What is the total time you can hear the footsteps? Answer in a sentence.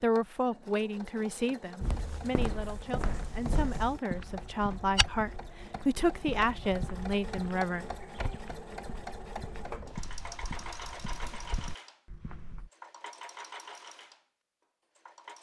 You can hear the footsteps for 11 seconds altogether.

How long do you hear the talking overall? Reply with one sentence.
The talking can be heard for 8 seconds in total.